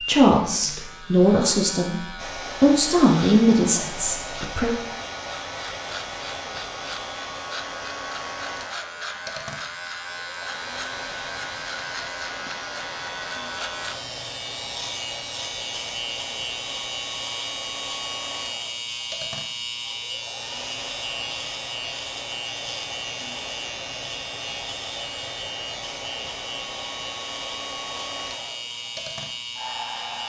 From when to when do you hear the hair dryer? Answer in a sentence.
The hair dryer can be heard from 2.1 to 30.2 s.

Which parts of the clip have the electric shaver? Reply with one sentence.
You can hear the electric shaver from 0.0 to 30.2 s.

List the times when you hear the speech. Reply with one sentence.
The speech can be heard from 0.0 to 4.8 s.